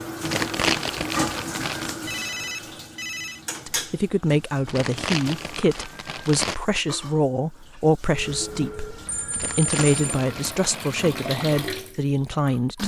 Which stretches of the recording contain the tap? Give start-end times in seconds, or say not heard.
0.0-12.8.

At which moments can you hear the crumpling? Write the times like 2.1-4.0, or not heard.
0.2-1.9, 4.7-6.5, 9.3-10.9.